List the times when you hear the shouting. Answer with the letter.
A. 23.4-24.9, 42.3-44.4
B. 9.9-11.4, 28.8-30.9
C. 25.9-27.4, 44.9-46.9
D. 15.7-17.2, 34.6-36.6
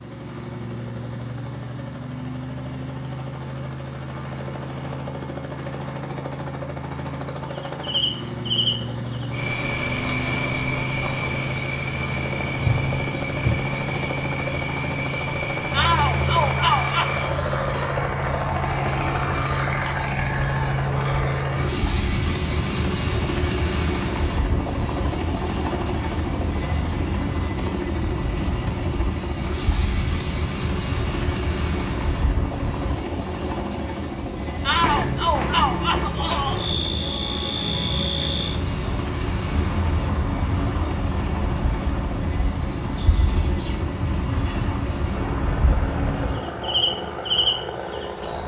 D.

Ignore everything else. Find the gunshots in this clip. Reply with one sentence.
You can't hear the gunshots here.